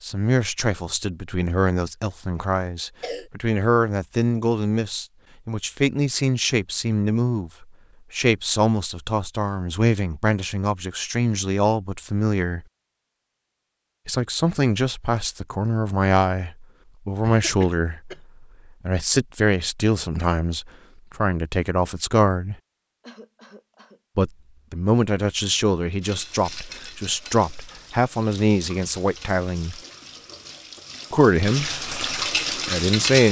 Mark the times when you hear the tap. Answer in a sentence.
You can hear the tap from 26.0 to 33.2 s.